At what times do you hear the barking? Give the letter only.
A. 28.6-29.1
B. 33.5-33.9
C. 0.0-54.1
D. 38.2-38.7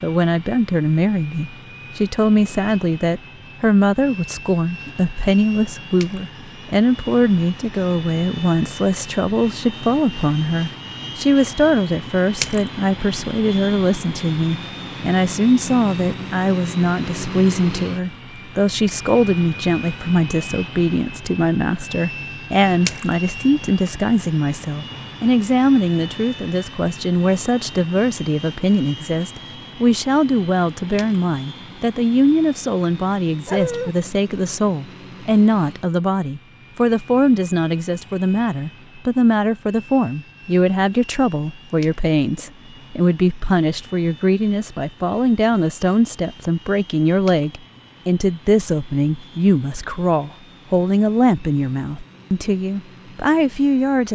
B.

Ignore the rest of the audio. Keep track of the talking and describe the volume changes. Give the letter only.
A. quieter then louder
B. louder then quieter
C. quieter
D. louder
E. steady
E.